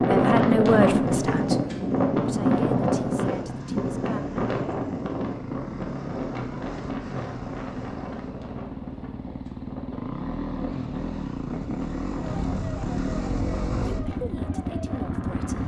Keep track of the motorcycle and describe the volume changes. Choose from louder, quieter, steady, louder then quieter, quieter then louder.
louder.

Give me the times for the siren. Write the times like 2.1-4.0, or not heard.
12.2-15.6.